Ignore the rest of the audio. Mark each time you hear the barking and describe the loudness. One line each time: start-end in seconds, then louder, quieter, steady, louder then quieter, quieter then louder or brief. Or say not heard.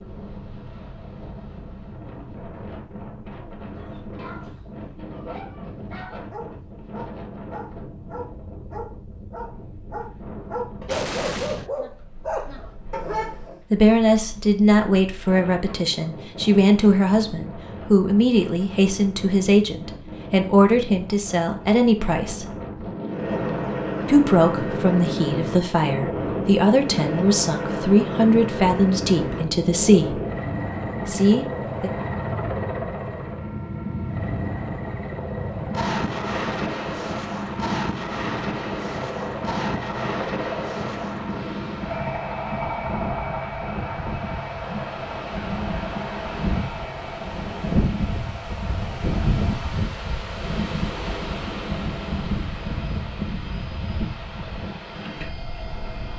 3.8-13.6 louder.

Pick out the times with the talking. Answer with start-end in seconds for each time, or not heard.
13.7-22.4, 24.1-30.2, 31.1-31.9.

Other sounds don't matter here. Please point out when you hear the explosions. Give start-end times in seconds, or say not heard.
10.8-11.7.